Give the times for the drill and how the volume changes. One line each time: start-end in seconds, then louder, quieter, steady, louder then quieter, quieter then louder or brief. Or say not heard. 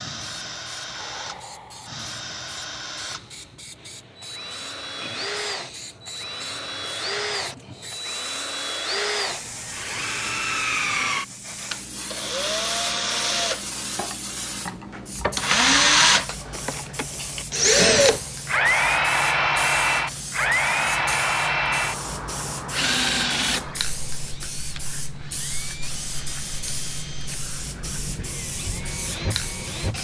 0.0-29.9 louder then quieter.